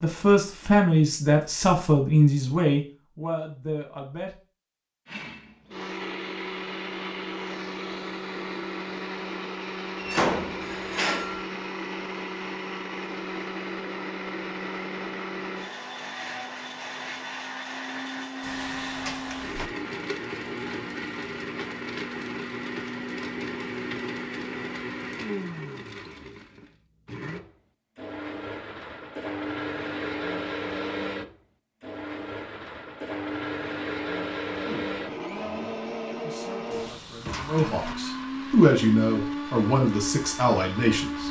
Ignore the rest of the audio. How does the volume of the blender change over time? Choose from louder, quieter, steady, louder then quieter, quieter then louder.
steady.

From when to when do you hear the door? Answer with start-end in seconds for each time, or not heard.
9.9-11.4, 18.4-19.7, 36.7-38.0.